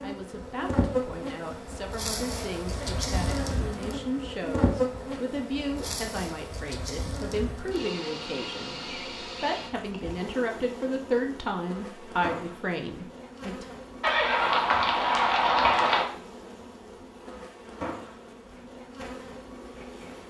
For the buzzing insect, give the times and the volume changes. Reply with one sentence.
You can hear the buzzing insect from 0.0 to 20.2 s, getting quieter.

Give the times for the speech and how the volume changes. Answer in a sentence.
The speech can be heard from 0.0 to 13.8 s, getting louder.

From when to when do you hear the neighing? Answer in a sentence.
The neighing can be heard from 14.0 to 16.1 s.